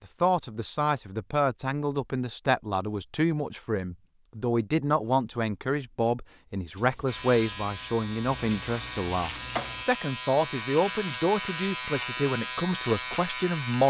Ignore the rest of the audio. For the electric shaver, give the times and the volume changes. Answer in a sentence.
The electric shaver can be heard from 7.0 to 13.8 s, getting louder.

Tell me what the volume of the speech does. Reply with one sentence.
The volume of the speech stays about the same.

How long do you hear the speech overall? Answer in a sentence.
You can hear the speech for 14 seconds altogether.